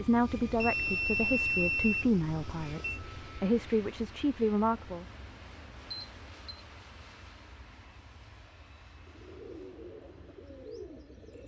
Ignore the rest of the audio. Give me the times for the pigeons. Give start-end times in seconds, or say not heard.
8.9-11.4.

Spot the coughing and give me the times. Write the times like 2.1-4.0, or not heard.
not heard.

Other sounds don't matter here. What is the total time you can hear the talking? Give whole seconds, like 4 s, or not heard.
5 s.